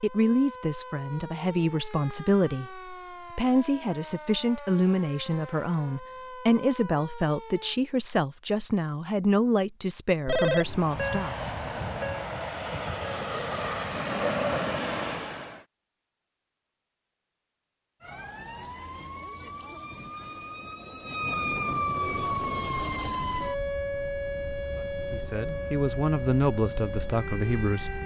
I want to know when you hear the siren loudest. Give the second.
22 s.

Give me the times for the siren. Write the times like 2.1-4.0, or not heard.
0.0-7.8, 18.0-28.0.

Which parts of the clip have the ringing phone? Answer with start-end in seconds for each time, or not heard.
10.2-10.9.